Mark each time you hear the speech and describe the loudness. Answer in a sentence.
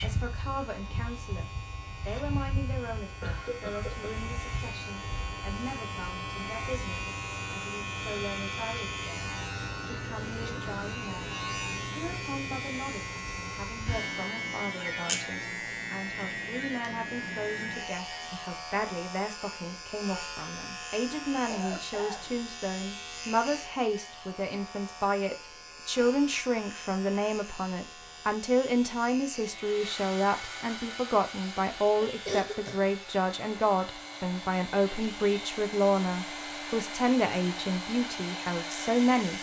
The speech can be heard from 0.0 to 39.3 s, getting louder.